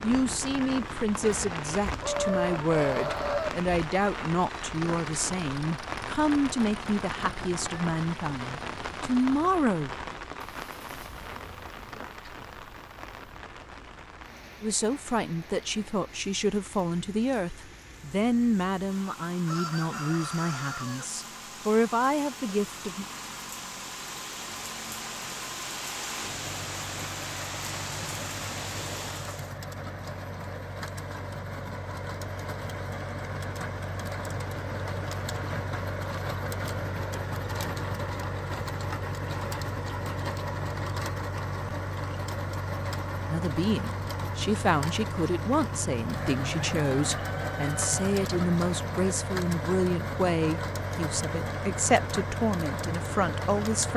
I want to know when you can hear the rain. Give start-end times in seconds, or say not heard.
0.0-29.6.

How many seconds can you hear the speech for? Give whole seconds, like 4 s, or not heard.
29 s.